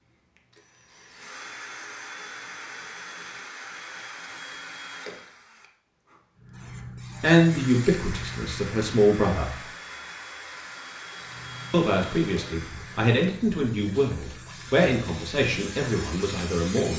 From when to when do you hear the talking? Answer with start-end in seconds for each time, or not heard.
7.2-9.6, 11.7-16.9.